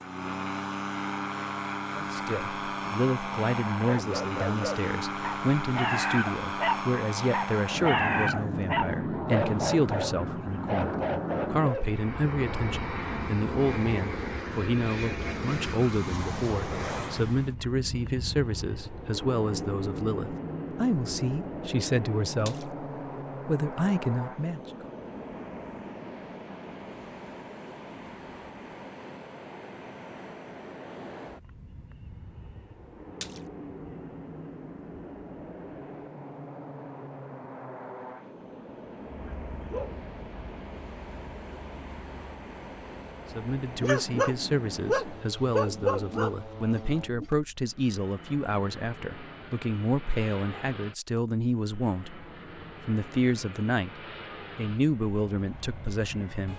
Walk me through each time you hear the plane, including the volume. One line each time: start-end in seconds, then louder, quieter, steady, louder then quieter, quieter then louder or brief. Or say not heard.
0.0-56.5 quieter.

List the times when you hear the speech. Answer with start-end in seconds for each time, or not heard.
1.9-22.7, 23.4-24.6, 43.3-52.2, 52.9-56.5.